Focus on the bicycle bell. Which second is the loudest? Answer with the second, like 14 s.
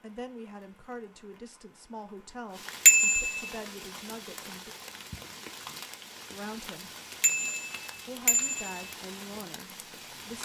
3 s.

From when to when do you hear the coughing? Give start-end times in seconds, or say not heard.
not heard.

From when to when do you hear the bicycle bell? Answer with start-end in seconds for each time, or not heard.
2.9-3.5, 7.2-8.9.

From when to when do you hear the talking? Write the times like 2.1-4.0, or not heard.
0.0-4.8, 6.3-6.9, 8.1-10.4.